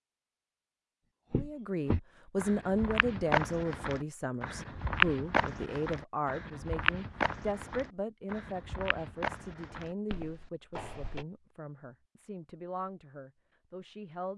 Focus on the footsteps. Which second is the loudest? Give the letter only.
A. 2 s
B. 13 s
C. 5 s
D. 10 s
C.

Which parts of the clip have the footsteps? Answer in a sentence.
The footsteps can be heard from 1.3 to 11.2 s.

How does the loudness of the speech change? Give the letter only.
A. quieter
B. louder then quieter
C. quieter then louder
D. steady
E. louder
A.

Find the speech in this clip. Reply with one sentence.
You can hear the speech from 1.4 to 14.3 s.